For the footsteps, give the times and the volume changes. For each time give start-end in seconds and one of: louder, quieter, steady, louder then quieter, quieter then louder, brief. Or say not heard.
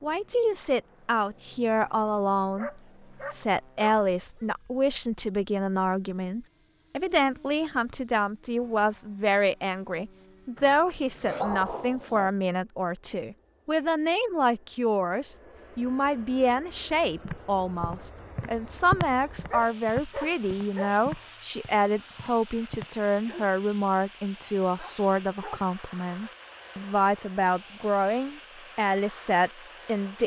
17.2-22.9 louder then quieter.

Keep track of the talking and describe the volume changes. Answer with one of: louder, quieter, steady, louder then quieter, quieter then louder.
steady.